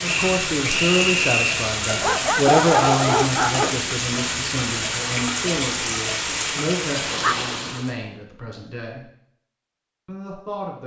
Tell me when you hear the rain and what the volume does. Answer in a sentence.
The rain can be heard from 0.0 to 8.0 s, at a steady volume.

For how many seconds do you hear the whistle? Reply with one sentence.
The whistle can be heard for 2 seconds in total.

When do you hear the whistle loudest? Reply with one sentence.
The loudest moment of the whistle is at 1 second.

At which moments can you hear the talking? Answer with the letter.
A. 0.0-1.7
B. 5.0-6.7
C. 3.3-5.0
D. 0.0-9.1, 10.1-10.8
D.